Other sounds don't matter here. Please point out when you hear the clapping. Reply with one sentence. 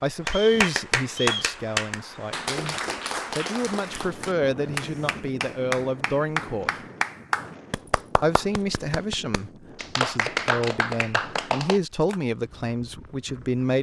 You can hear the clapping from 0.2 to 12.2 s.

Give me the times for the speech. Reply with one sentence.
You can hear the speech from 0.0 to 2.8 s, from 3.4 to 6.7 s and from 8.2 to 13.7 s.